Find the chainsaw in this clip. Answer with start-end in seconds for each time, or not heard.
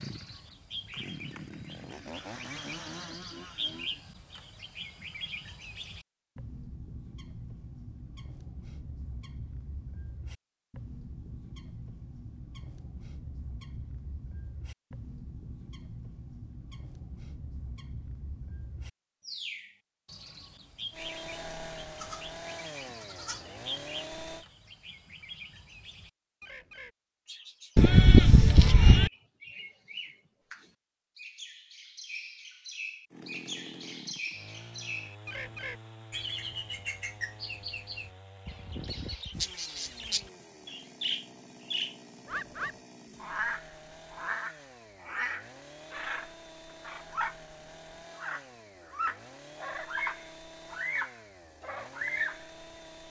0.0-3.9, 20.9-24.4, 33.1-53.0.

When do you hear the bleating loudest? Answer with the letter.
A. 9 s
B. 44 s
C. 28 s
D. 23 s
C.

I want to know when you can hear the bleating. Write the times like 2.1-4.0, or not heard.
21.9-23.4, 27.8-29.1.